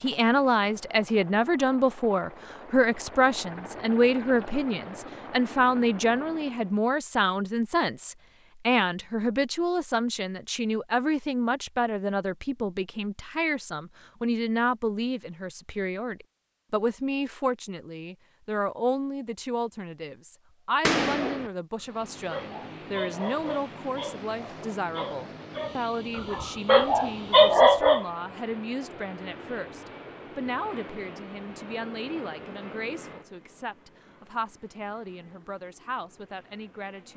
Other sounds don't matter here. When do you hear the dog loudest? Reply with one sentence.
The loudest moment of the dog is at 28 seconds.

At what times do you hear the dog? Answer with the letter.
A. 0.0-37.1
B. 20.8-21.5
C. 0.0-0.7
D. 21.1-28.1
D.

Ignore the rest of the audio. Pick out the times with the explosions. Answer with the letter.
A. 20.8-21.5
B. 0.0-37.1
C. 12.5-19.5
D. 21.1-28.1
A.